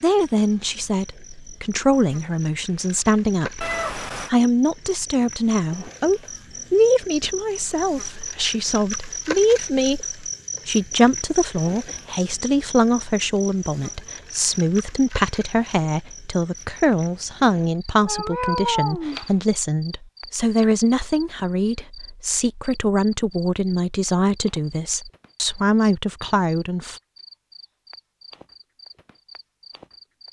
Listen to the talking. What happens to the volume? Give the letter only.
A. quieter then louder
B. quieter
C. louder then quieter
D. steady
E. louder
D.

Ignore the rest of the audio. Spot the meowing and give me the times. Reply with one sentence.
You can hear the meowing from 3.6 to 4.3 s and from 18.0 to 19.3 s.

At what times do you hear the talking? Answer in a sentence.
You can hear the talking from 0.0 to 27.0 s.